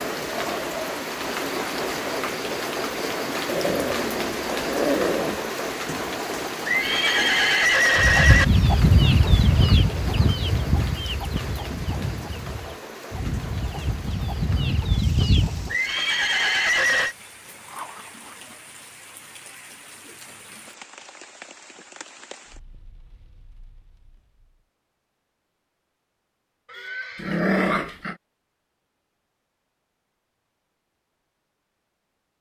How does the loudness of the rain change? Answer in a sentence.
The loudness of the rain goes down.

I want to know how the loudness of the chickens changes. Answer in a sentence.
The loudness of the chickens goes down, then up.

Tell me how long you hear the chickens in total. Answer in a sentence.
You can hear the chickens for 8 seconds altogether.